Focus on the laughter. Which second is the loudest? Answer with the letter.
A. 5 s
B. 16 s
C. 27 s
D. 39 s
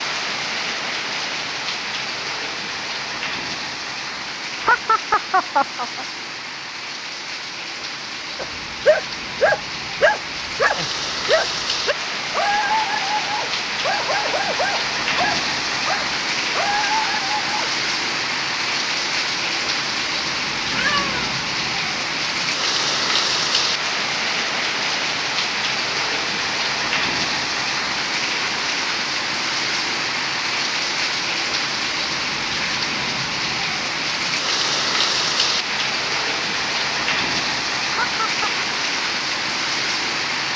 A.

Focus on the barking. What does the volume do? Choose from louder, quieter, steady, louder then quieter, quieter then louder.
quieter.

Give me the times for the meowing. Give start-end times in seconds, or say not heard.
20.7-21.4.